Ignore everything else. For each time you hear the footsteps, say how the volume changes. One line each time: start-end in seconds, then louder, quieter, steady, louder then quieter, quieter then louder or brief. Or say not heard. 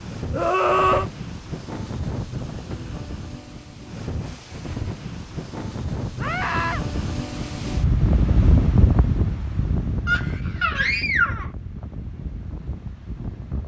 not heard.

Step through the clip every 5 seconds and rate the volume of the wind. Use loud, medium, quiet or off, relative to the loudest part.
medium, loud, medium.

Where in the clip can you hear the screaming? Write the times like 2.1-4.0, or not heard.
0.3-1.1, 6.2-6.8, 10.1-11.4.